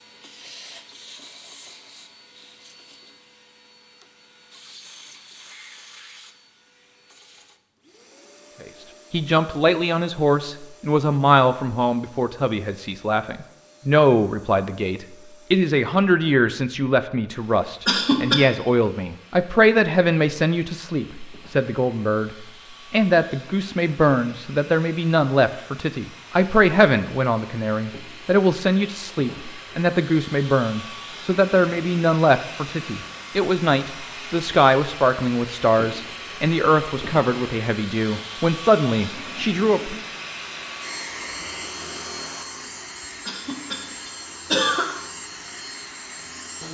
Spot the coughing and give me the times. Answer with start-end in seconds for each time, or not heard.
17.9-18.4, 43.2-44.9.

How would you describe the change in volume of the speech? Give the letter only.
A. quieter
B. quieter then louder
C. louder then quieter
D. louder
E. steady
E.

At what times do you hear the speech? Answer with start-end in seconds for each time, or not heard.
8.6-40.0.